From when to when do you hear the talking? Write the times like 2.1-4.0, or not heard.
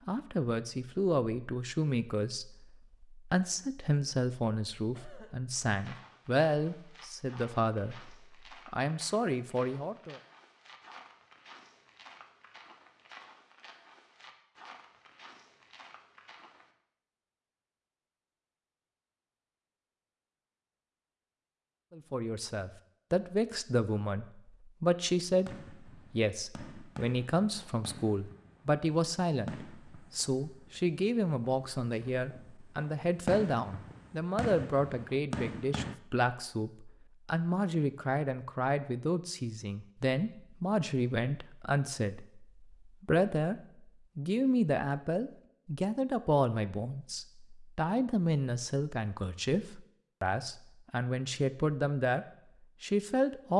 0.1-10.2, 21.9-53.5.